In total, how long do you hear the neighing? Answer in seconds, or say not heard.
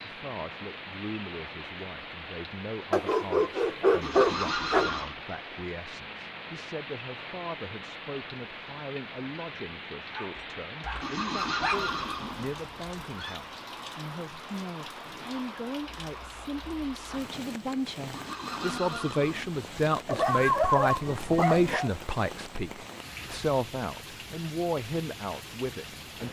5 s.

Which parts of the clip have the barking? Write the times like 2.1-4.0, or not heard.
2.9-4.9, 10.1-11.8, 20.1-21.9.